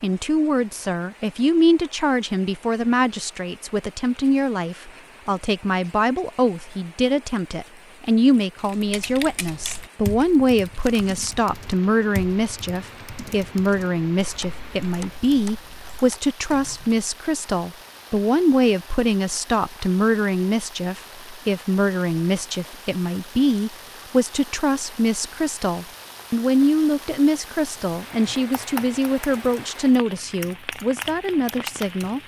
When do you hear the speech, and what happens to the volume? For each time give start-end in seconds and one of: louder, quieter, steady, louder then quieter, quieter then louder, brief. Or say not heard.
0.0-32.2 steady.